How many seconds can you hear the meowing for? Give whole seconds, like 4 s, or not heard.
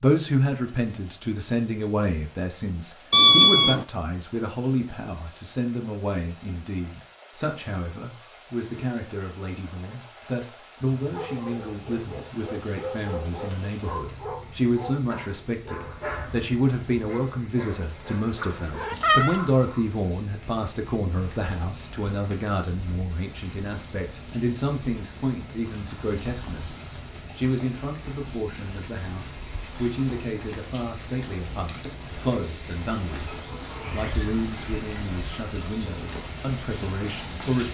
2 s.